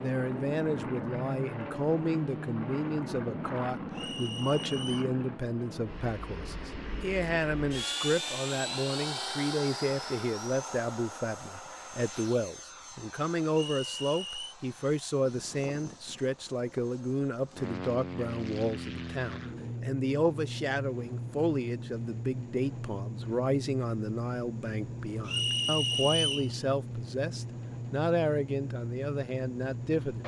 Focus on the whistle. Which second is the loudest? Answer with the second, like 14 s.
26 s.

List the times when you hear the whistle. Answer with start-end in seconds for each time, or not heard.
3.9-5.1, 13.5-14.6, 25.2-26.5.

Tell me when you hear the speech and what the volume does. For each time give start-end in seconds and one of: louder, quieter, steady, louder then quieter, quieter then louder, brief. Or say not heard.
0.0-30.2 steady.